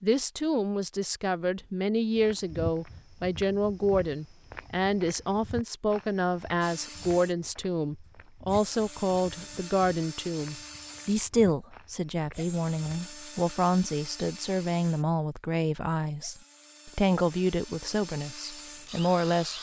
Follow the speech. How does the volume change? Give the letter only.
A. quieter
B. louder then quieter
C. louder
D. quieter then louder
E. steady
E.